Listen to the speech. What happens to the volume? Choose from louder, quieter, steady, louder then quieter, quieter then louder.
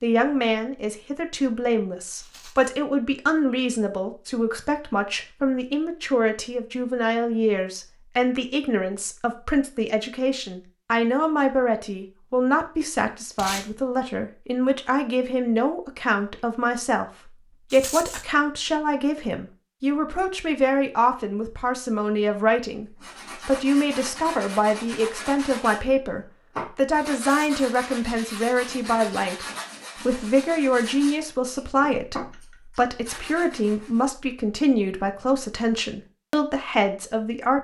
steady.